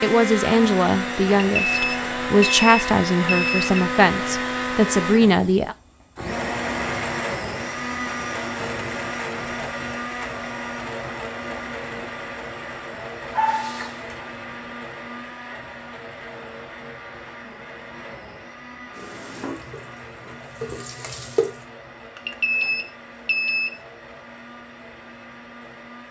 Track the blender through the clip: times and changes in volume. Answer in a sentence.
The blender can be heard from 0.0 to 26.0 s, getting quieter.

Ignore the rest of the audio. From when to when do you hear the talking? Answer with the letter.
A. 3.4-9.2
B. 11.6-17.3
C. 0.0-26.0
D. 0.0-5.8
D.